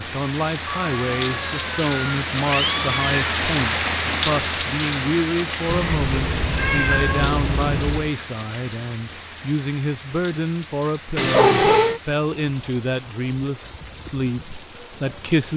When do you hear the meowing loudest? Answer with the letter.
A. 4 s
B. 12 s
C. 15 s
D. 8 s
B.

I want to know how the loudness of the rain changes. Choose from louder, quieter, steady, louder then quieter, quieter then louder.
quieter.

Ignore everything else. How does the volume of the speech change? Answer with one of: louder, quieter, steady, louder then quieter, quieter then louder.
steady.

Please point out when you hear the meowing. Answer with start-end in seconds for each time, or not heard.
0.7-3.2, 5.7-8.1, 11.2-12.0.